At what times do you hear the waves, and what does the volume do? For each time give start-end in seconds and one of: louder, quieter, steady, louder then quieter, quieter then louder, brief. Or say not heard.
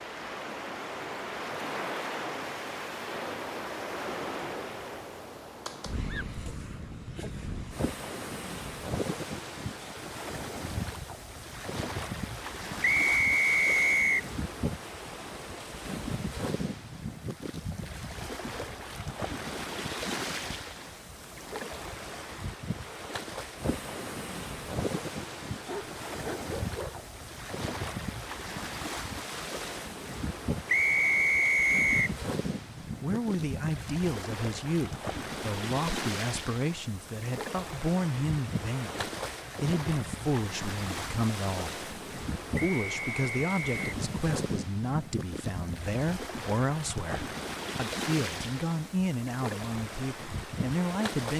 0.0-51.3 steady.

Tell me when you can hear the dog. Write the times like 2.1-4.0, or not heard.
25.6-27.1.